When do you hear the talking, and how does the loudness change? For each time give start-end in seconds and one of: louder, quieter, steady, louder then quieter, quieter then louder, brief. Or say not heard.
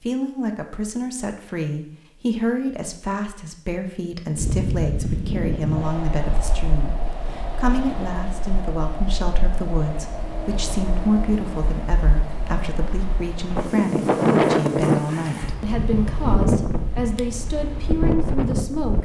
0.0-19.0 steady.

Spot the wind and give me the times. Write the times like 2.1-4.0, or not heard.
4.3-19.0.